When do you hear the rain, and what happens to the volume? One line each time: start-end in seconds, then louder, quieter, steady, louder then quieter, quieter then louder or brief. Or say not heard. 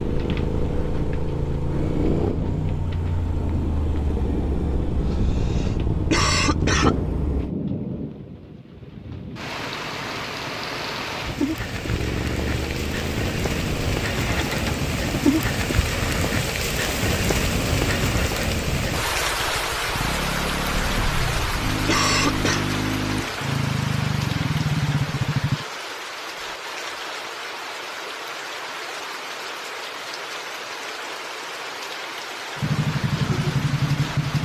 0.0-34.4 louder then quieter.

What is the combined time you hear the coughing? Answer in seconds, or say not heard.
4 s.